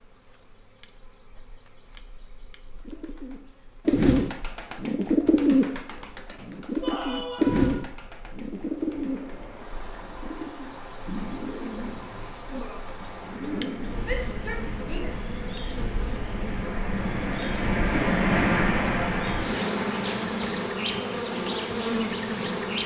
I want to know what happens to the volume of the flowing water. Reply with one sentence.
The volume of the flowing water goes up, then down.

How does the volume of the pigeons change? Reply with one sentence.
The volume of the pigeons goes down.